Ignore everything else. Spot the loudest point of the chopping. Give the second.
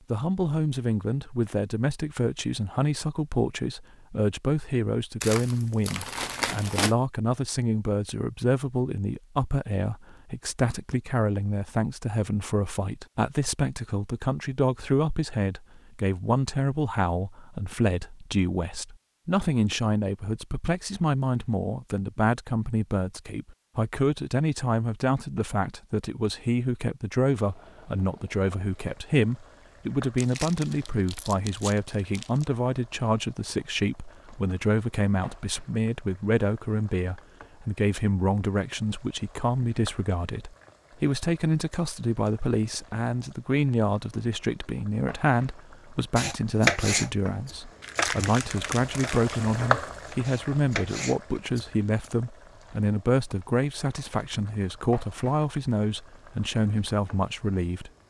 47 s.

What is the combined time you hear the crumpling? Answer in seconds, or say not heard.
6 s.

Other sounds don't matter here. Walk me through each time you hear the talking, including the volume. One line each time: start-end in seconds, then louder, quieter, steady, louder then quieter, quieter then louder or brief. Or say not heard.
0.1-57.9 steady.